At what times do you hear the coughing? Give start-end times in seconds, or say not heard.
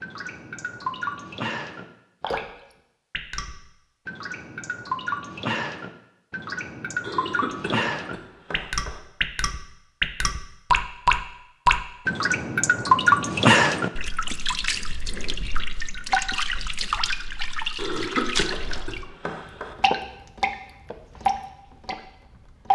7.0-9.0, 17.8-19.8.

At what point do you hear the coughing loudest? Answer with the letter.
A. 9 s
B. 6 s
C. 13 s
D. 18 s
D.